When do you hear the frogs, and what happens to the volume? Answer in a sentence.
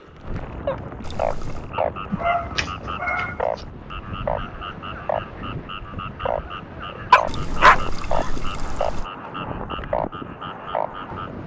You can hear the frogs from 0.0 to 11.4 s, at a steady volume.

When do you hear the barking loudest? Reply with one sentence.
The volume of the barking peaks at 8 seconds.